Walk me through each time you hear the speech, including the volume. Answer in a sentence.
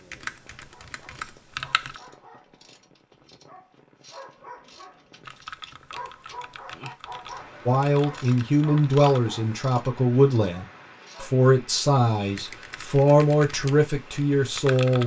You can hear the speech from 7.7 to 15.0 s, at a steady volume.